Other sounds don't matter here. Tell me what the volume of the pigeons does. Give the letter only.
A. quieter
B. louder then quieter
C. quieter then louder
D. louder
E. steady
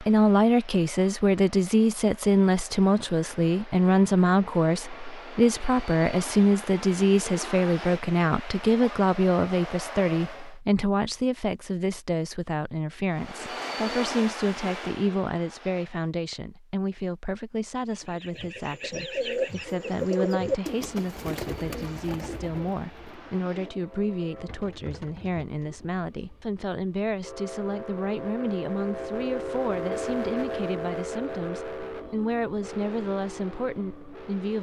A.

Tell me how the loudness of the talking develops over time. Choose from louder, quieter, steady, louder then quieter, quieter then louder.
quieter.